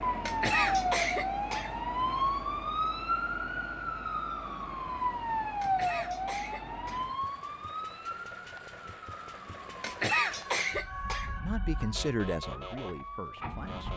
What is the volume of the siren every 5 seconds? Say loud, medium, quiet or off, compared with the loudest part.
loud, loud, medium.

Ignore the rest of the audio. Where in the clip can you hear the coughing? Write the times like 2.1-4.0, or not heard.
0.2-1.7, 5.6-7.1, 9.8-11.3.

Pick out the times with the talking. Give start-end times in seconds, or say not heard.
11.4-13.9.